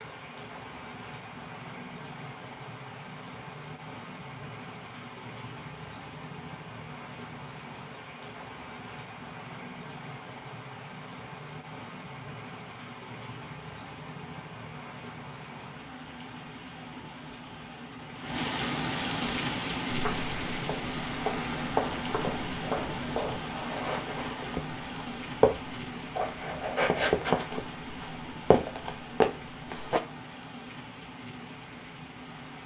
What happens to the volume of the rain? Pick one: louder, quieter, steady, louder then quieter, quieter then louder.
louder then quieter.